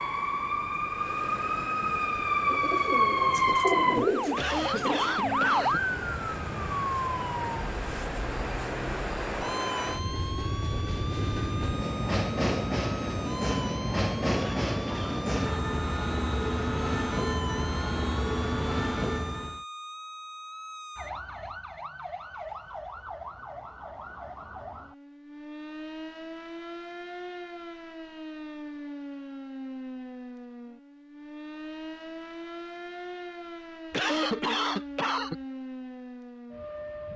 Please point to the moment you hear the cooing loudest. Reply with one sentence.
The volume of the cooing peaks at 4 seconds.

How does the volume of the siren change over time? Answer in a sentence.
The volume of the siren goes down.